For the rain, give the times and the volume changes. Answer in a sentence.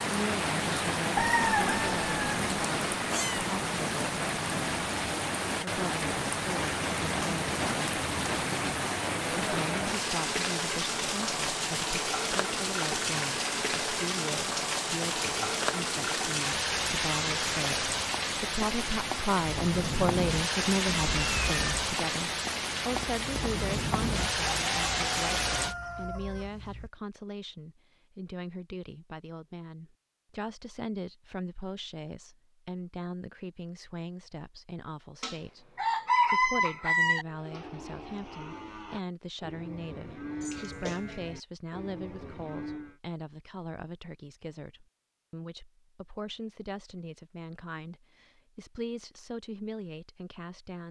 You can hear the rain from 0.0 to 25.8 s, at a steady volume.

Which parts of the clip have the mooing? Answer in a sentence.
You can hear the mooing from 37.2 to 43.0 s.